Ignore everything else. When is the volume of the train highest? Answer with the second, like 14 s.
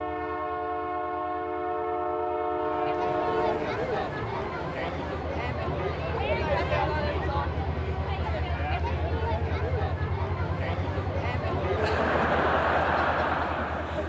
3 s.